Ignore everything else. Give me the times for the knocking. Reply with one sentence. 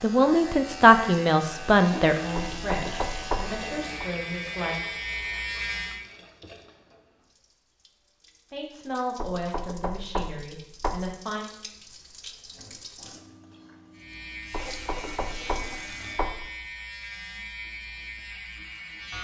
The knocking can be heard from 2.4 to 4.0 s, from 9.2 to 11.2 s and from 14.5 to 16.4 s.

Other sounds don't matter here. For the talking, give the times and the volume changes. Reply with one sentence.
You can hear the talking from 0.0 to 4.8 s, getting quieter; and briefly from 8.5 to 11.4 s.